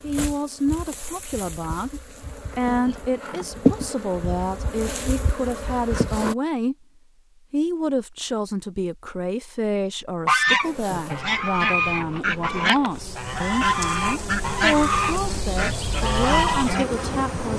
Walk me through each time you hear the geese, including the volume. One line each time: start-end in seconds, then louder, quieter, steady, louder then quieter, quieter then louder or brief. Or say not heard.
10.2-16.9 steady.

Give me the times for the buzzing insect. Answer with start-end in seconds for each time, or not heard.
0.0-6.3, 10.6-17.5.